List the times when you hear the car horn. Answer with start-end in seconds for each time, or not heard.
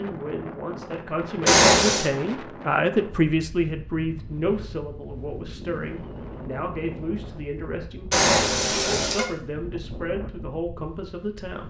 1.4-2.1, 8.1-9.2.